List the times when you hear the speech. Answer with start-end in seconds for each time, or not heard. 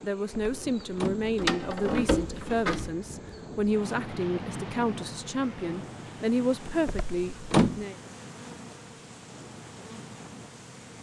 0.0-8.0.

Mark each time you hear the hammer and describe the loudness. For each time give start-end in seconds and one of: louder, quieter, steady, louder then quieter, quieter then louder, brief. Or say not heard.
not heard.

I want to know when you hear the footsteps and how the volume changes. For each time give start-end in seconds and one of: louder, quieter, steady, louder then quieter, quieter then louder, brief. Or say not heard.
not heard.